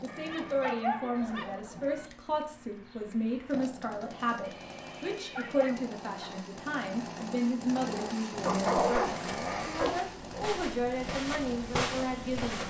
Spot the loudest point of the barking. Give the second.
9 s.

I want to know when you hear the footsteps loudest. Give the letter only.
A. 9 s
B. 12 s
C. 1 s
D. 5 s
B.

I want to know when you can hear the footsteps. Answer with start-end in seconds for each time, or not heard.
9.0-12.6.